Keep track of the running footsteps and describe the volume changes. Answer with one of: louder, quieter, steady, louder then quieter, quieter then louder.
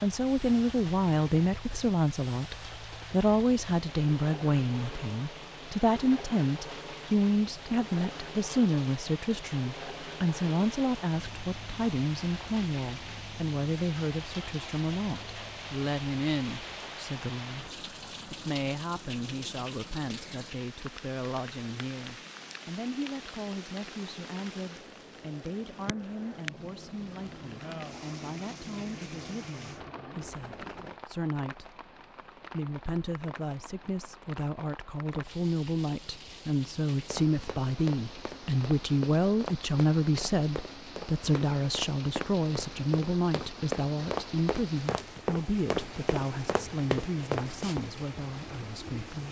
louder.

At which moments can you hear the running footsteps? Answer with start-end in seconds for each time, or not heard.
37.0-47.9.